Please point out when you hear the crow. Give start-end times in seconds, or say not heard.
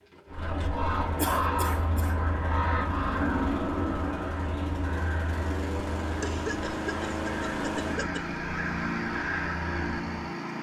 0.2-10.2.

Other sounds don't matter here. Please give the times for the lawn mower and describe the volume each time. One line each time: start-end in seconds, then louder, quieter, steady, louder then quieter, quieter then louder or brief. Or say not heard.
0.0-10.5 louder.